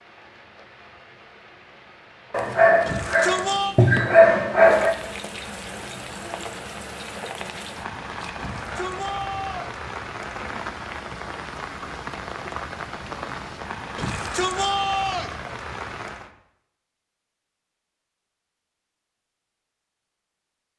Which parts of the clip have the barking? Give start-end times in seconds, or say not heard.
2.3-5.0.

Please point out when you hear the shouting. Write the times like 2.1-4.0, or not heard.
2.9-3.8, 8.3-9.8, 13.9-15.3.